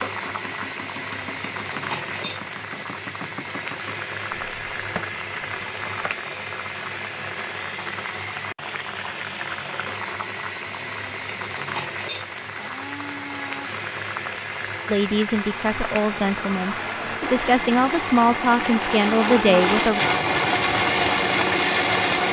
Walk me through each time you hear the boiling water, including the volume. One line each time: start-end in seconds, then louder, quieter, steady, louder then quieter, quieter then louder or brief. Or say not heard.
0.0-22.2 steady.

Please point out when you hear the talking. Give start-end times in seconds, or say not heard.
14.9-20.0.